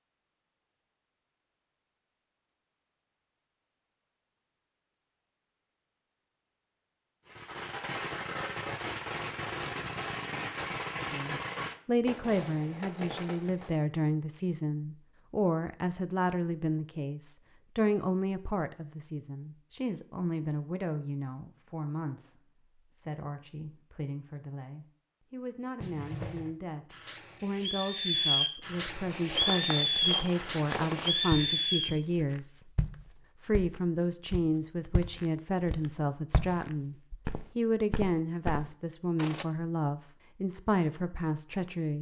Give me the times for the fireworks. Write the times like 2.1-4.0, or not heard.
7.2-13.8, 25.8-31.9.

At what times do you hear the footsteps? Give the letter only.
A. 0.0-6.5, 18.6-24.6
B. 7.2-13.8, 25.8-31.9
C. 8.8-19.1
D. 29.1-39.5
D.